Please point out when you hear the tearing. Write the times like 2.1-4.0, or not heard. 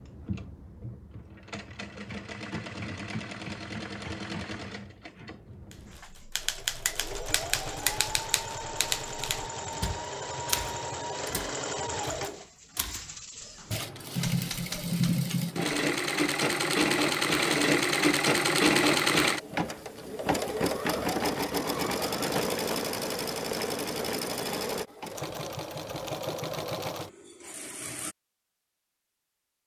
not heard.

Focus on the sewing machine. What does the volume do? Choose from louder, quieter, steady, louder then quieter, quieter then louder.
louder then quieter.